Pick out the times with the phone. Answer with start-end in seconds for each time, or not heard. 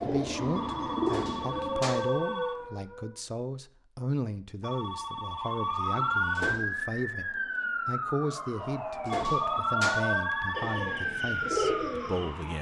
0.6-2.7, 4.6-6.6, 9.1-11.1.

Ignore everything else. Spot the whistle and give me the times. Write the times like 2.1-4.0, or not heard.
not heard.